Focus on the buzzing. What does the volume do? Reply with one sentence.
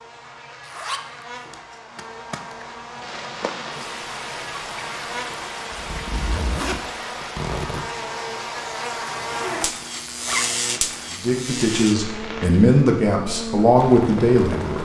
The loudness of the buzzing goes up.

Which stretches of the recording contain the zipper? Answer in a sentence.
The zipper can be heard from 0.6 to 2.6 s, from 5.7 to 7.8 s and from 10.2 to 10.6 s.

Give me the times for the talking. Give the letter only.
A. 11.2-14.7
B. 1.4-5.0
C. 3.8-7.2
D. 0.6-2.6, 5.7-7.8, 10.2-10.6
A.